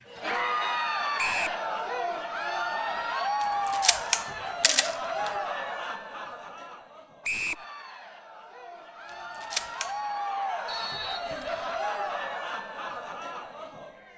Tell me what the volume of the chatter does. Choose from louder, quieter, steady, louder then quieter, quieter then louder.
quieter then louder.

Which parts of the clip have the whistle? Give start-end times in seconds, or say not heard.
1.1-1.6, 7.2-7.7, 10.7-11.8.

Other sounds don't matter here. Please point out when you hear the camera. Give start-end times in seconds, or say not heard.
3.4-5.3, 9.3-9.9.